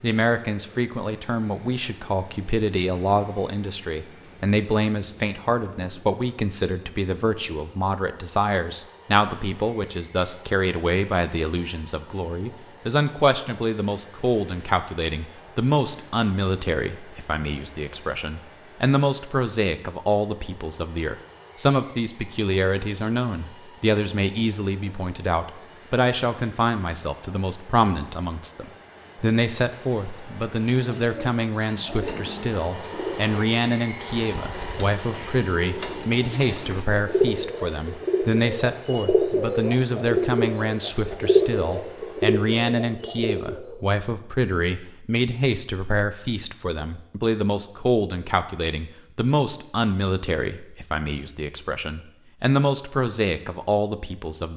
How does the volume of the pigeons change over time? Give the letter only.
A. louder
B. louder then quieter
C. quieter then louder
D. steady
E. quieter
A.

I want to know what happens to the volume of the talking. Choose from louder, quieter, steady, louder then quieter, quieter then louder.
steady.